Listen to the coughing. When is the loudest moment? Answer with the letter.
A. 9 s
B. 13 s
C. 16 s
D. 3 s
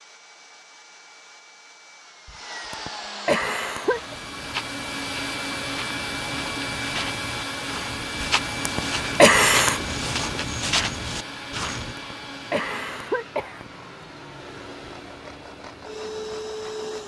A.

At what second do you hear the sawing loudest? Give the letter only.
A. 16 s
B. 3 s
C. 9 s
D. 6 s
B.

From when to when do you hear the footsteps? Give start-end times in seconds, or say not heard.
3.4-11.9.